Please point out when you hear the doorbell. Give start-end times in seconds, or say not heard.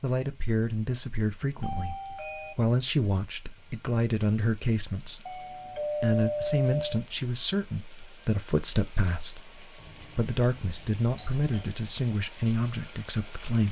1.6-2.5, 5.2-7.0, 9.8-11.7.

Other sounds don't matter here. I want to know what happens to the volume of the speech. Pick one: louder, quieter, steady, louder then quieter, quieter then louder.
steady.